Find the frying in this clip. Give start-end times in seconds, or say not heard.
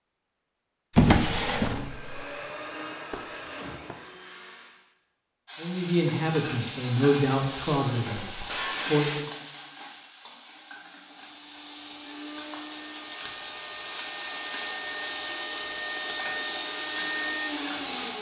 5.5-18.1.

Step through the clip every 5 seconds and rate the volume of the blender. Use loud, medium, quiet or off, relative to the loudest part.
medium, off, medium, loud.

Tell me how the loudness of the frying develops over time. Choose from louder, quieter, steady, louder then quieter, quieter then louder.
quieter then louder.